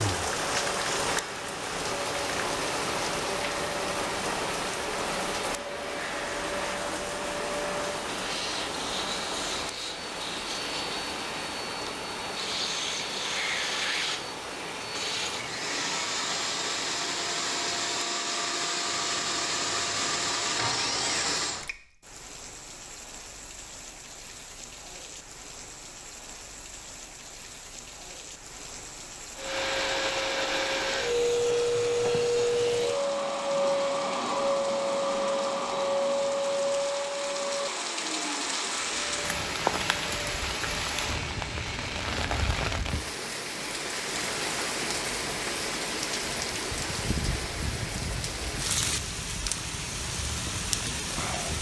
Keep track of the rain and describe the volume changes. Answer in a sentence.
The loudness of the rain goes down, then up.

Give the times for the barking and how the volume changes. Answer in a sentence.
The barking can't be heard in this clip.